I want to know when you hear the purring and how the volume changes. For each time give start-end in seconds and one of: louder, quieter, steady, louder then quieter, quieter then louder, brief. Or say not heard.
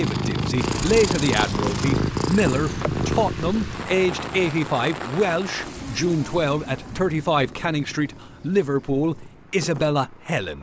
0.0-10.4 quieter.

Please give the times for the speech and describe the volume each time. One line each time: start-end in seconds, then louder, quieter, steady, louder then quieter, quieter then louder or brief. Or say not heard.
0.0-10.5 steady.